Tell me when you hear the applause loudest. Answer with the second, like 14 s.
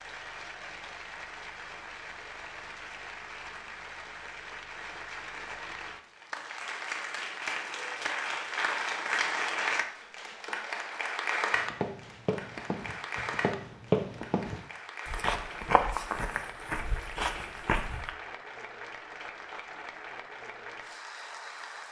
9 s.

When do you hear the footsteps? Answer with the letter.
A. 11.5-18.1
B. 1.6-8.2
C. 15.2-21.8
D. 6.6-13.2
A.